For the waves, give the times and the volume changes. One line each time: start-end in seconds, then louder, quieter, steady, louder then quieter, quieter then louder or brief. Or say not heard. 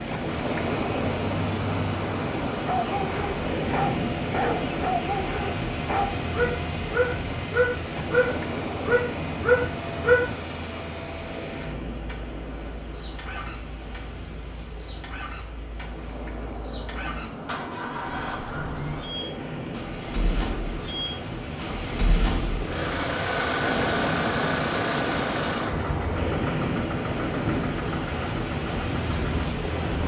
0.0-30.0 quieter then louder.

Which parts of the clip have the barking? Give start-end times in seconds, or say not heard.
2.6-10.3.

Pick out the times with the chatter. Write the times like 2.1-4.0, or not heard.
not heard.